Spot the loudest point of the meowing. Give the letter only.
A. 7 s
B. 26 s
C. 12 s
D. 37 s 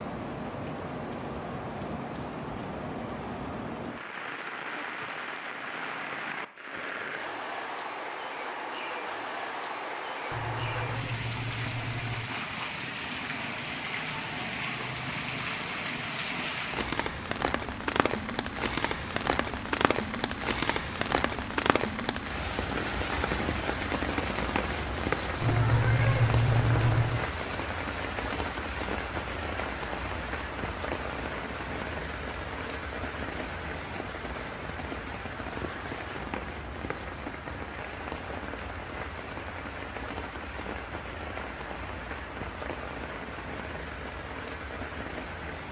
B.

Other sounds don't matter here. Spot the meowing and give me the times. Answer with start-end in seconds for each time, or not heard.
10.3-12.3, 25.4-27.2.